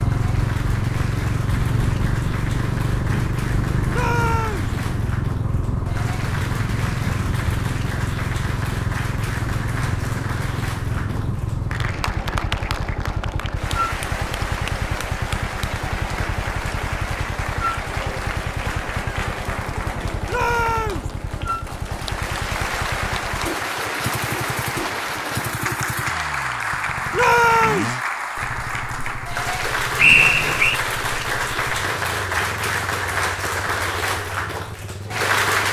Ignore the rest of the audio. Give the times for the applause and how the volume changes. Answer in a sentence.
You can hear the applause from 0.0 to 35.6 s, getting louder.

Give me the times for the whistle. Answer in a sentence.
You can hear the whistle from 29.9 to 30.8 s.